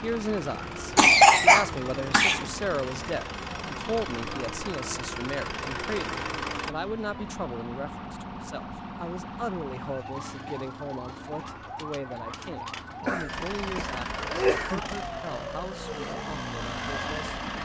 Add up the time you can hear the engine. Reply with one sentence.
You can hear the engine for 11 seconds altogether.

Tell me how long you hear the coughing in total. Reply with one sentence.
The coughing can be heard for 3 seconds in total.